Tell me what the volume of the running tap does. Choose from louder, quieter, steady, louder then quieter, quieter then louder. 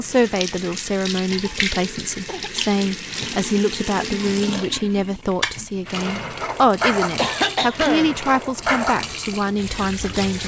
steady.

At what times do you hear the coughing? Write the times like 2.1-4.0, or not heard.
2.2-3.5, 7.2-8.2.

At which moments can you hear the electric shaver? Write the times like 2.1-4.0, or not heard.
not heard.